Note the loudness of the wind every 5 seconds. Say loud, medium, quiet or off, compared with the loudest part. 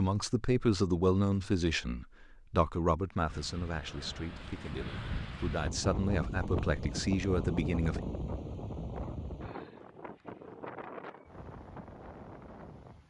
medium, loud, medium.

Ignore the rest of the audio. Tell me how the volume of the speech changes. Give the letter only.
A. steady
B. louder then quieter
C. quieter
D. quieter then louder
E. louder
D.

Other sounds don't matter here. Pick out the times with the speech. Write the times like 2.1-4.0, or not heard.
0.0-8.0.